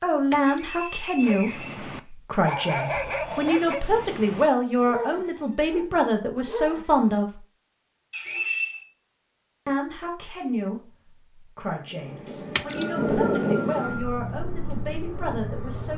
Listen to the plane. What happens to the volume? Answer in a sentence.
The volume of the plane goes up, then down.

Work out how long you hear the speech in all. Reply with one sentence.
The speech can be heard for 14 seconds in total.